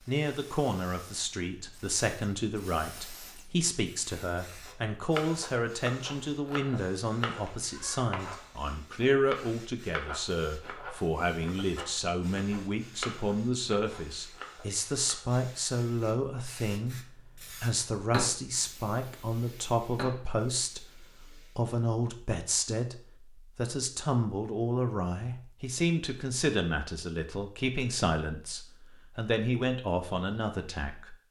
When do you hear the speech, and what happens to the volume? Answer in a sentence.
The speech can be heard from 0.1 to 16.9 s, at a steady volume; and from 17.6 to 31.2 s, at a steady volume.